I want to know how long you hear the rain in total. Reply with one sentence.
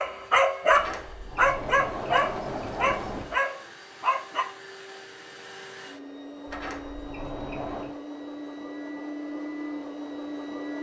The rain can't be heard in this clip.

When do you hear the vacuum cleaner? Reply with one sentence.
You can hear the vacuum cleaner from 0.0 to 10.7 s.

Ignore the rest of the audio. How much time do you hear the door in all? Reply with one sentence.
You can hear the door for 4 seconds altogether.